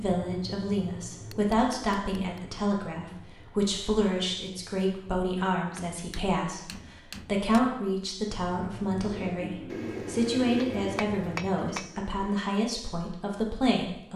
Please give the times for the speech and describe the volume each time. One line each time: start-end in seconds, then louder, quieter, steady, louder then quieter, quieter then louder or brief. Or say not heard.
0.0-14.1 steady.